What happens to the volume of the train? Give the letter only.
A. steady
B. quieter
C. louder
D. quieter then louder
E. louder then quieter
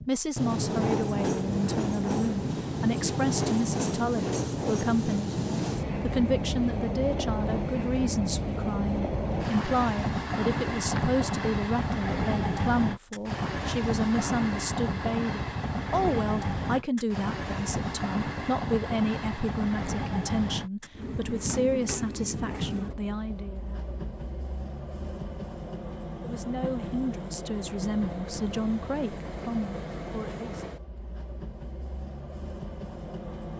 B.